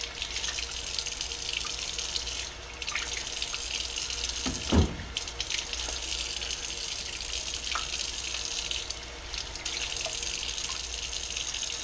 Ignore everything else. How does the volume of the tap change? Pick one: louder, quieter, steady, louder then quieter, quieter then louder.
steady.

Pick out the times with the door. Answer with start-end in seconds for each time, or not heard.
4.5-5.2.